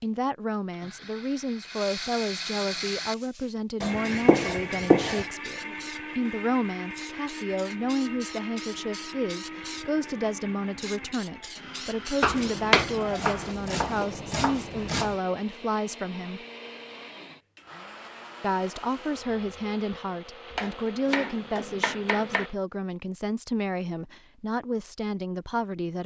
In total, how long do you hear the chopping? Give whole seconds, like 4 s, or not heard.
6 s.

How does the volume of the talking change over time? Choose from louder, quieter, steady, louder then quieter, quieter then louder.
steady.